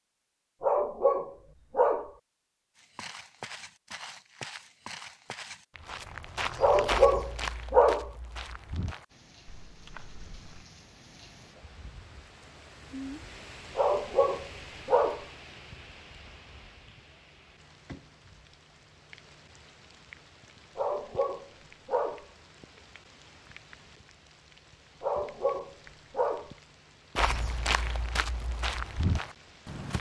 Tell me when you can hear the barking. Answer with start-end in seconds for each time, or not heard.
0.6-2.1, 6.6-8.1, 13.8-15.2, 20.8-22.2, 25.0-26.5.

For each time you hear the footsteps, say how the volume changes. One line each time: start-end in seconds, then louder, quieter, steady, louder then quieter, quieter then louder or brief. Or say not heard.
2.8-10.7 louder then quieter
27.1-29.9 brief.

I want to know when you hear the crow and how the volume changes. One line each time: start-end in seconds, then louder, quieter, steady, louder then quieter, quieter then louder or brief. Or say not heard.
not heard.